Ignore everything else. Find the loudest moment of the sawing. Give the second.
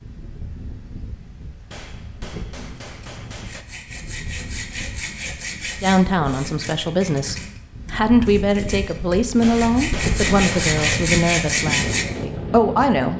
11 s.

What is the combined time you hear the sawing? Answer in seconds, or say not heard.
9 s.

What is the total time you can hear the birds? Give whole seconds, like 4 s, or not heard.
not heard.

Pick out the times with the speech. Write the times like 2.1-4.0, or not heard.
5.8-13.1.